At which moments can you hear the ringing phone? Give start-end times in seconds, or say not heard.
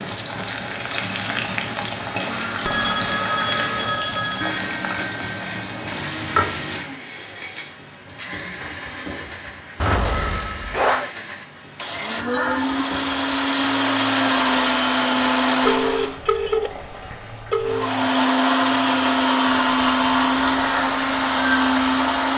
2.6-4.6, 9.8-11.1, 15.6-17.9.